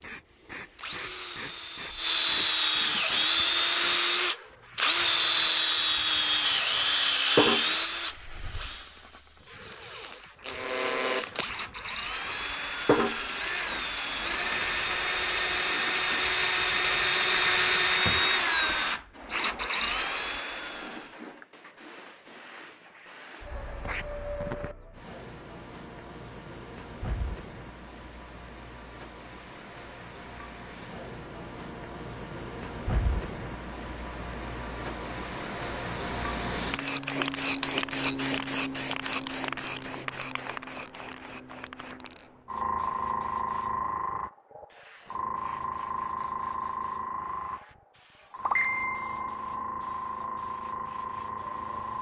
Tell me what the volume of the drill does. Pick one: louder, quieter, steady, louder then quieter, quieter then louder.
quieter then louder.